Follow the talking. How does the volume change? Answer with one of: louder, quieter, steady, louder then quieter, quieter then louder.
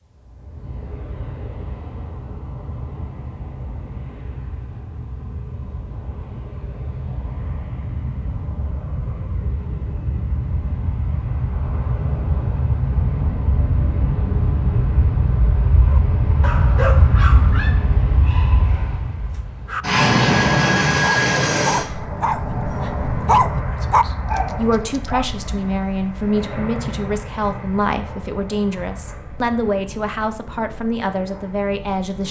steady.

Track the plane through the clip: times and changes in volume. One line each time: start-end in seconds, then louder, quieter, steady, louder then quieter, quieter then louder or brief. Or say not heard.
0.0-32.2 louder then quieter.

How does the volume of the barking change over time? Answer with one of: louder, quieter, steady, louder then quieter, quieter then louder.
quieter then louder.